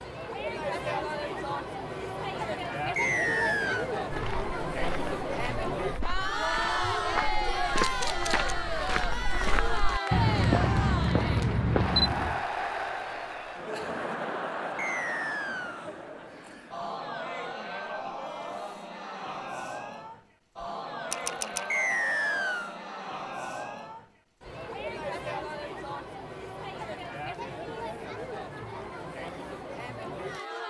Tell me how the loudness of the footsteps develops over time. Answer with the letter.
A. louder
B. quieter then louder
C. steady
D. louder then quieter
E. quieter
A.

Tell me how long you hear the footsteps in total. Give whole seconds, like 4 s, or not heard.
8 s.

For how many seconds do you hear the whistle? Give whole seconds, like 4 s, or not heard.
3 s.